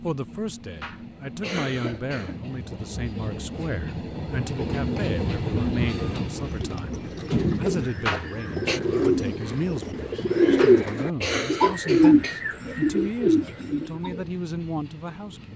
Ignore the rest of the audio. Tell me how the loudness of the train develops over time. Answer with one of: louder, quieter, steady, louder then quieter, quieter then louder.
louder then quieter.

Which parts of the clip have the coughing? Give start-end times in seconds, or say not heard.
0.8-2.4, 8.1-8.8, 10.6-12.4.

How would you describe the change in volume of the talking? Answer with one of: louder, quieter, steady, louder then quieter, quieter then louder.
steady.